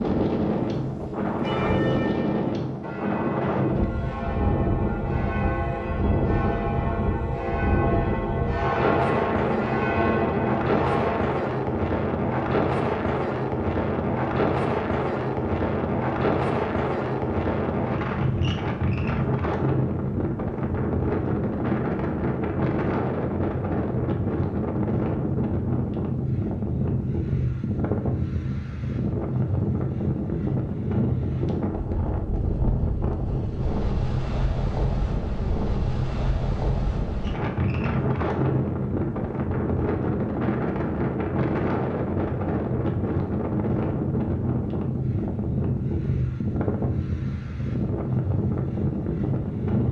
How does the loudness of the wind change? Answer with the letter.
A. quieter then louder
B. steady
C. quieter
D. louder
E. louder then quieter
B.